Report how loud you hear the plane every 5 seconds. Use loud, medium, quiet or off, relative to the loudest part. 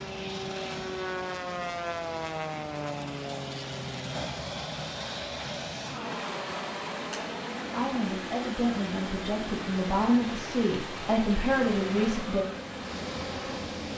loud, loud, medium.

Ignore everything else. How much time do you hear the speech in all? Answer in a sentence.
The speech can be heard for 5 seconds in total.